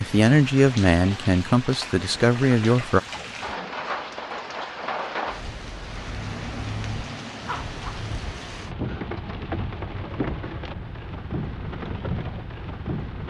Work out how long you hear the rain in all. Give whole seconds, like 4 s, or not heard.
13 s.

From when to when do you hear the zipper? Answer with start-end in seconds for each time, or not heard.
7.5-8.1.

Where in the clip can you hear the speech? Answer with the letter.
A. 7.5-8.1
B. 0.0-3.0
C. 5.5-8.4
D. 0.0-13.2
B.